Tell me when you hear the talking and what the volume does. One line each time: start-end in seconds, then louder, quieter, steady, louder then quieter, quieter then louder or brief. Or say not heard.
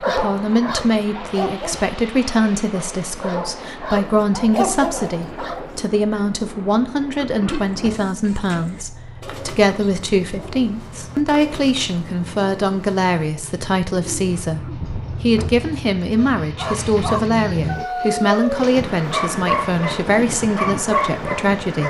0.0-21.8 steady.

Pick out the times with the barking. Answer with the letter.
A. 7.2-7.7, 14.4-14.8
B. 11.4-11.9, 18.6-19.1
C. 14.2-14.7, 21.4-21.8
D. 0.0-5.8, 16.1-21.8
D.